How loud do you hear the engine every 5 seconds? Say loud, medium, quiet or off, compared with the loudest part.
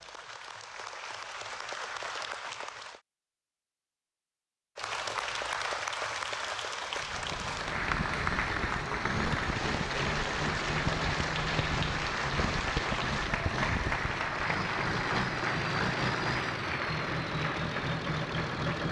off, loud, loud, loud.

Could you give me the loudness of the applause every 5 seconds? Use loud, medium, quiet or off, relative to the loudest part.
medium, loud, loud, loud.